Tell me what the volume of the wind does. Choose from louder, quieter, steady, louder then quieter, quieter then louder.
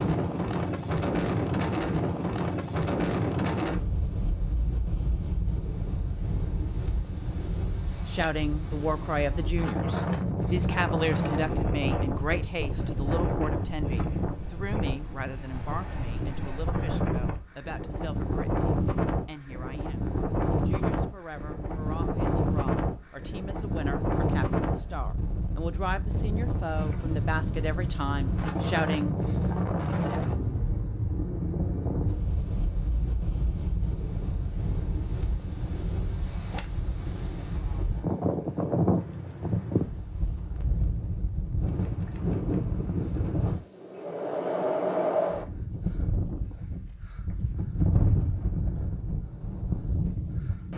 steady.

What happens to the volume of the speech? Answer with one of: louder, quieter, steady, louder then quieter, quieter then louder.
quieter then louder.